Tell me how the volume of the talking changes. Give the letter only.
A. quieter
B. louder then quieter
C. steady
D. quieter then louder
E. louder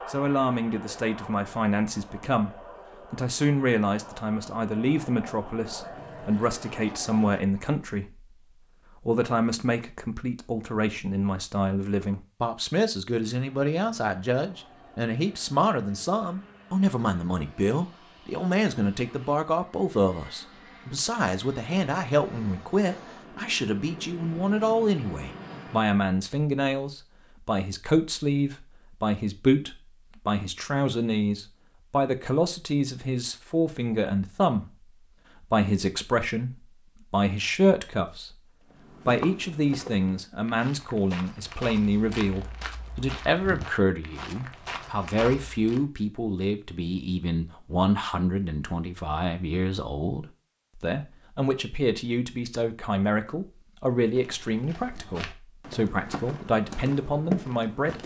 C.